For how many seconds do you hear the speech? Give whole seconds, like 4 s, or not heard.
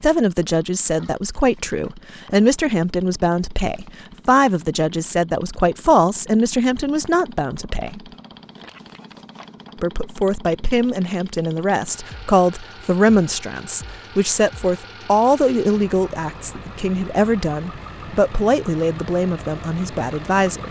19 s.